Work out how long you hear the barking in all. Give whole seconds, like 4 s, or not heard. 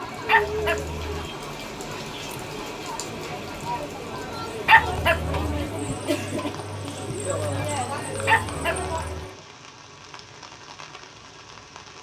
3 s.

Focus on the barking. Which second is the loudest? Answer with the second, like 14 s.
5 s.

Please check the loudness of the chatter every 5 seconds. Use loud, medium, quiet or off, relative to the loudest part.
loud, loud, off.